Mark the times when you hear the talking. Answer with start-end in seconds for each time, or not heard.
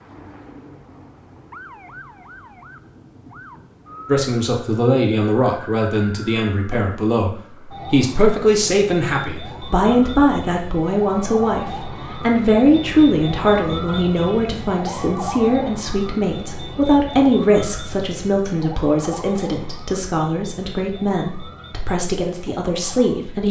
4.0-23.4.